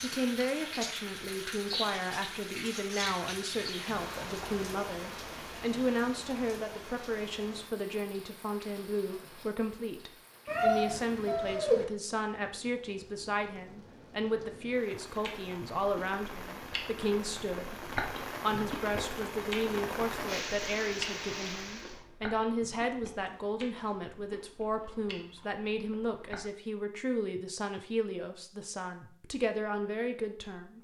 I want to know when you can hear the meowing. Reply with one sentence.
You can hear the meowing from 10.4 to 11.8 s.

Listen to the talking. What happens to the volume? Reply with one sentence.
The volume of the talking stays about the same.